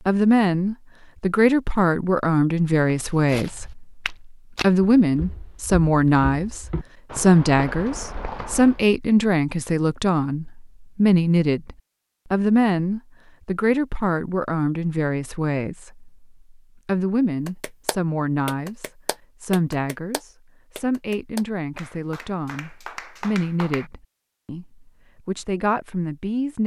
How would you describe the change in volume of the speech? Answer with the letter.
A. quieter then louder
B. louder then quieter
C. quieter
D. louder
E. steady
C.